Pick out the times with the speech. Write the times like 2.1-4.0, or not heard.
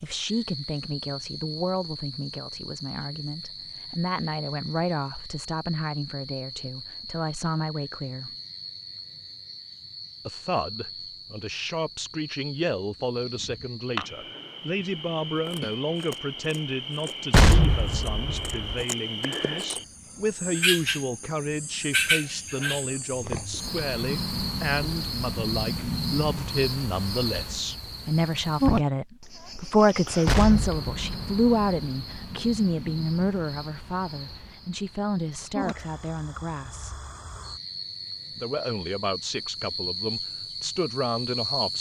0.0-8.3, 10.2-37.0, 38.4-41.7.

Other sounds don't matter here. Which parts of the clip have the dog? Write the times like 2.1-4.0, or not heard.
not heard.